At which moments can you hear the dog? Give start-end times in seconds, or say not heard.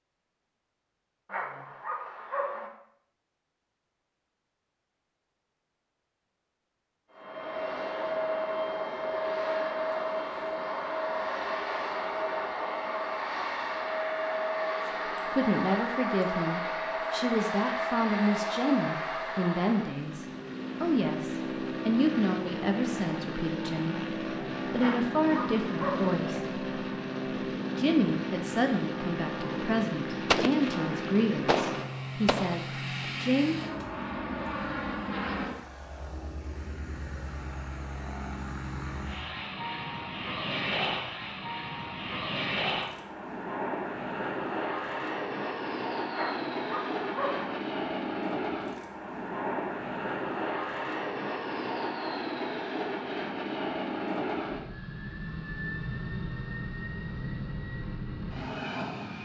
1.2-2.7, 24.8-26.1, 46.1-47.5.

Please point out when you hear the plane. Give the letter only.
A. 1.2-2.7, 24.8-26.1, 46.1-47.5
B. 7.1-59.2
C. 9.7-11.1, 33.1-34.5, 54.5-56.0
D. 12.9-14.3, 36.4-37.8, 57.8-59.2
B.